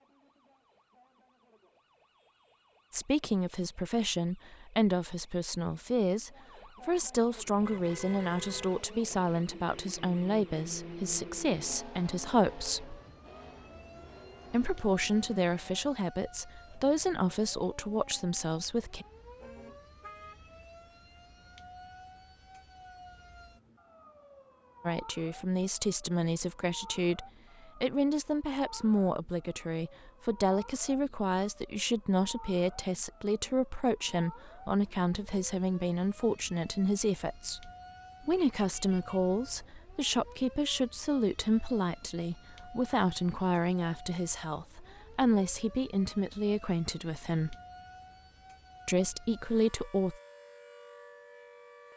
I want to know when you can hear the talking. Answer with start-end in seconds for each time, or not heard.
2.9-12.9, 14.5-19.1, 24.9-47.5, 48.9-50.1.